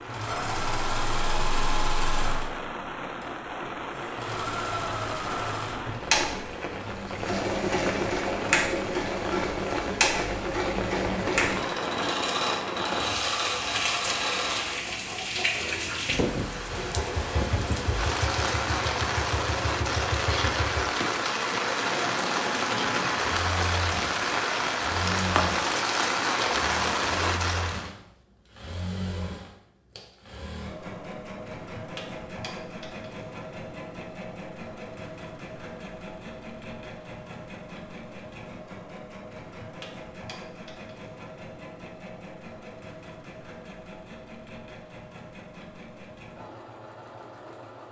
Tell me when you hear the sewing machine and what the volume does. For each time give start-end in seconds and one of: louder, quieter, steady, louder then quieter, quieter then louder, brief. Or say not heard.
0.0-47.8 quieter.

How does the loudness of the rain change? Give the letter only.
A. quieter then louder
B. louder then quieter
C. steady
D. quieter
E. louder
E.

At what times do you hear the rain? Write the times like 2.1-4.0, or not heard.
0.0-27.9.